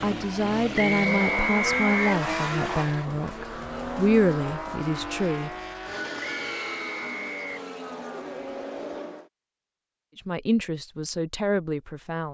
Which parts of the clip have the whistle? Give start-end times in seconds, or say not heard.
0.8-2.2, 6.2-7.7.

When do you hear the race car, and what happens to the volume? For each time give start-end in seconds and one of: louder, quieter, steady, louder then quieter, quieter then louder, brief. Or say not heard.
0.0-9.3 quieter.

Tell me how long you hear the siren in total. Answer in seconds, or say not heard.
not heard.